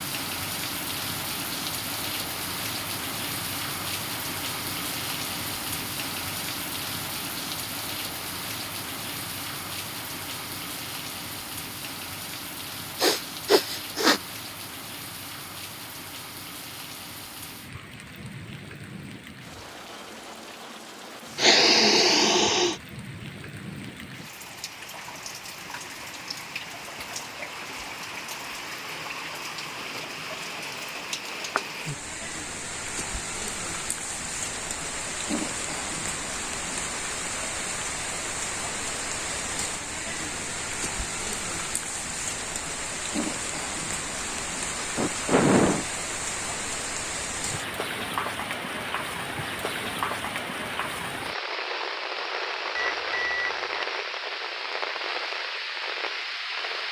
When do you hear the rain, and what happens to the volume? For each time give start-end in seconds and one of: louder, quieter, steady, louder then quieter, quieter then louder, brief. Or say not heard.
0.0-56.8 quieter then louder.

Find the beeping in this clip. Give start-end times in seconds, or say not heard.
52.8-53.9.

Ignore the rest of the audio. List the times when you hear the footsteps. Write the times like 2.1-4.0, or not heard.
not heard.